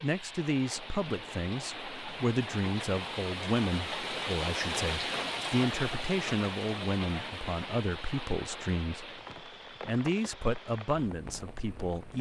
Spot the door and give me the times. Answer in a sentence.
You can't hear the door here.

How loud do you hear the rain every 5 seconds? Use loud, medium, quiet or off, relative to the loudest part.
loud, loud, medium.